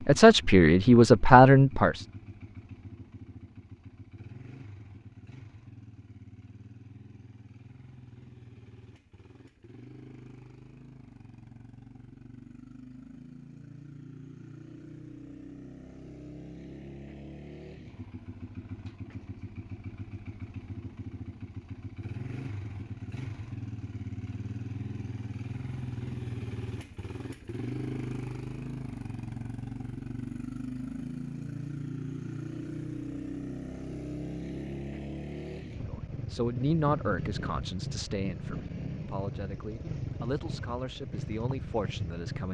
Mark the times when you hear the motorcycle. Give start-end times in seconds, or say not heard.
0.0-42.5.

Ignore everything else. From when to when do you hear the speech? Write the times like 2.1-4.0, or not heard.
0.1-2.0, 35.9-42.5.